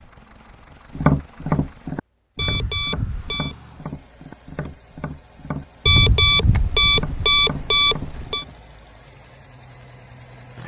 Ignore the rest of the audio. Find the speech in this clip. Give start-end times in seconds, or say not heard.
not heard.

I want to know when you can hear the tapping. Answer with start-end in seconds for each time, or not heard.
0.9-8.6.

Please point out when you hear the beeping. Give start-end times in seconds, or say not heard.
2.4-3.5, 5.8-8.4.